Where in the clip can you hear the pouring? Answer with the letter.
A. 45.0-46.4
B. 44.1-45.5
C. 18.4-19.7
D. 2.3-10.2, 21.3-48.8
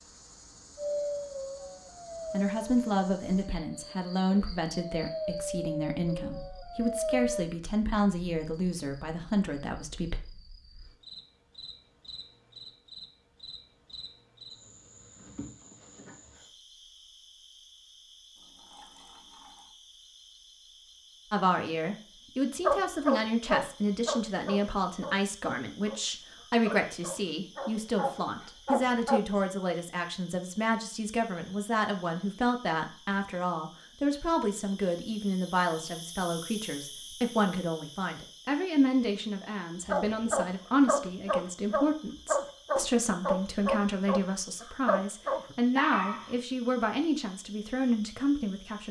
C.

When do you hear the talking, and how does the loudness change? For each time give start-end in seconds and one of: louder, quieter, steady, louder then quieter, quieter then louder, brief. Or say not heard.
2.3-10.2 steady
21.3-48.8 steady.